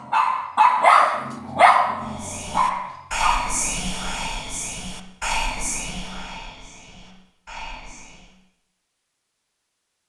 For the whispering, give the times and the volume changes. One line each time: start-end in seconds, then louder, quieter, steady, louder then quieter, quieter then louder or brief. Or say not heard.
2.0-8.3 quieter.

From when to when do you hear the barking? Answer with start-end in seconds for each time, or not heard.
0.0-3.6.